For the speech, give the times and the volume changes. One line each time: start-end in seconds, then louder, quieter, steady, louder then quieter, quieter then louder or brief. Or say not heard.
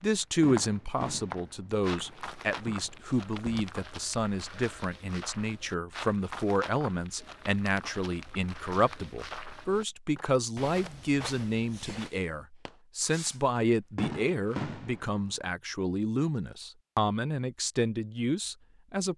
0.0-19.1 steady.